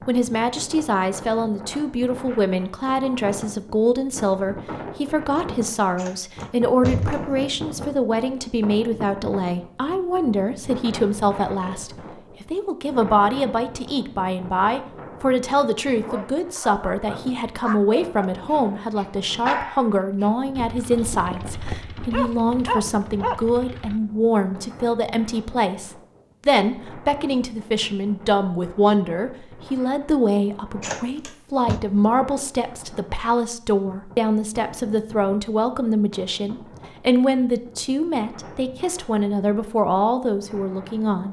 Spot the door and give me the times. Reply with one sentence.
The door can be heard from 6.0 to 7.3 s and from 30.8 to 31.8 s.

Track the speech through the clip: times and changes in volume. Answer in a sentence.
You can hear the speech from 0.1 to 41.2 s, at a steady volume.